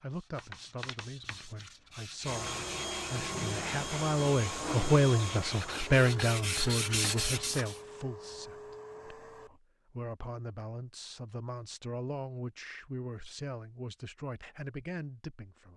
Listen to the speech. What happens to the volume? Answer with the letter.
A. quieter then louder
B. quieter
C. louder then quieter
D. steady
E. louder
C.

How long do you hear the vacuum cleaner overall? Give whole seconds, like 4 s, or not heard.
7 s.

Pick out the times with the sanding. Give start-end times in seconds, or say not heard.
0.1-7.8.